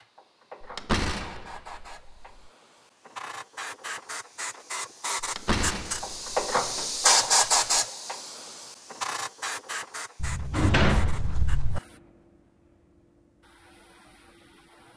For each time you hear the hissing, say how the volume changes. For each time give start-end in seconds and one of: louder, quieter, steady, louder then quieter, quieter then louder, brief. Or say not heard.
0.0-14.9 louder then quieter.